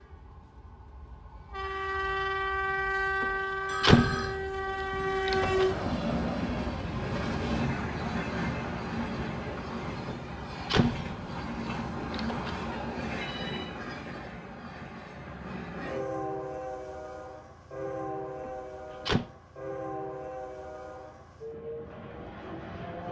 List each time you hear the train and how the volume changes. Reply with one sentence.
The train can be heard from 0.0 to 23.0 s, getting quieter.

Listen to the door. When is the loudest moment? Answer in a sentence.
The volume of the door peaks at 4 seconds.